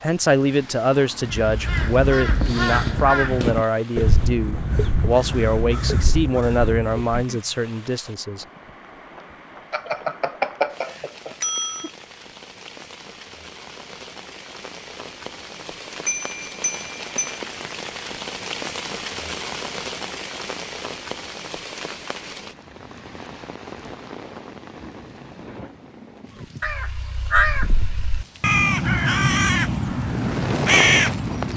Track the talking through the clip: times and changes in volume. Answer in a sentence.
The talking can be heard from 0.0 to 8.4 s, at a steady volume.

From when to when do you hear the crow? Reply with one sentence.
The crow can be heard from 1.2 to 7.2 s and from 26.6 to 31.5 s.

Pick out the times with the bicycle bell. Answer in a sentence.
The bicycle bell can be heard from 9.7 to 11.9 s and from 16.1 to 17.4 s.